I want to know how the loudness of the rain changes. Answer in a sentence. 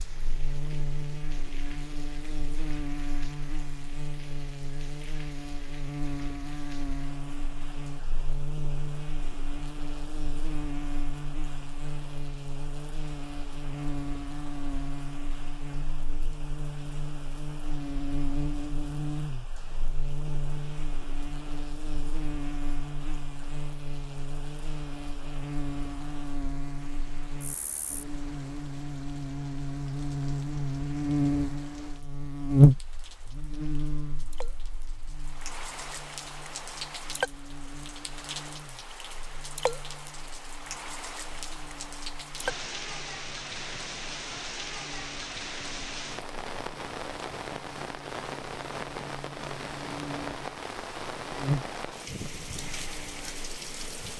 The loudness of the rain goes up.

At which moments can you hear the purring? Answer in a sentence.
The purring can't be heard in this clip.